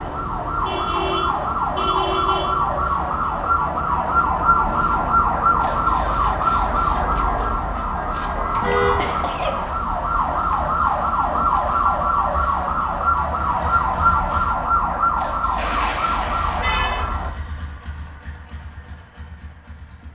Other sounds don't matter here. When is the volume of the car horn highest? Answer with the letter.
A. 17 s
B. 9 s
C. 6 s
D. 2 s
B.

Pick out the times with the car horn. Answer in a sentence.
The car horn can be heard from 0.6 to 2.5 s, from 8.6 to 9.1 s and from 15.6 to 17.1 s.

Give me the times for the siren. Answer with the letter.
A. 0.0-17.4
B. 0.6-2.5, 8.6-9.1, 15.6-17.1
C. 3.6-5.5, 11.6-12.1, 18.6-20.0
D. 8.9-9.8
A.